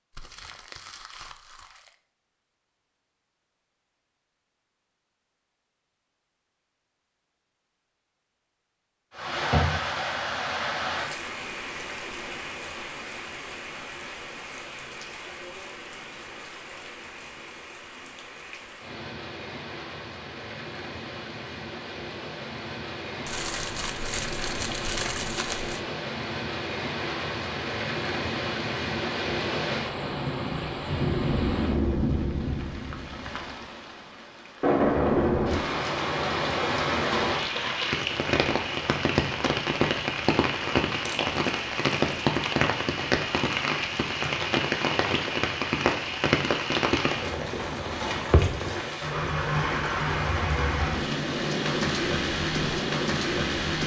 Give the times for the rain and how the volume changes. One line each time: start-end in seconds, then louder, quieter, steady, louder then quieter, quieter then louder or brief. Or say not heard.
9.2-53.8 louder.